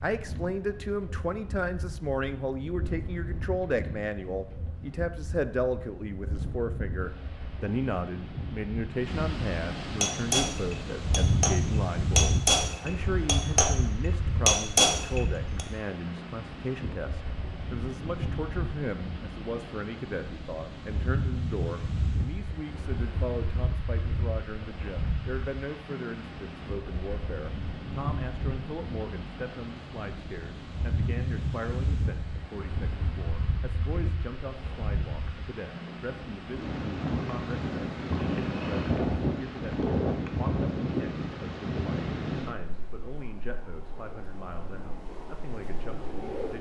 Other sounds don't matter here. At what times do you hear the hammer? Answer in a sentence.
You can hear the hammer from 10.0 to 11.6 s, from 12.2 to 13.7 s and from 14.4 to 15.7 s.